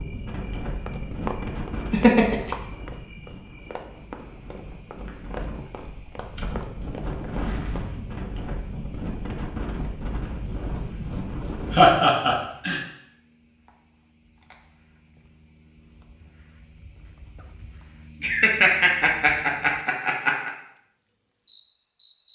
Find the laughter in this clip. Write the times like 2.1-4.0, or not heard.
1.9-2.5, 11.7-12.8, 18.2-20.5.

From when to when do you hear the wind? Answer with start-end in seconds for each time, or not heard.
0.0-11.9.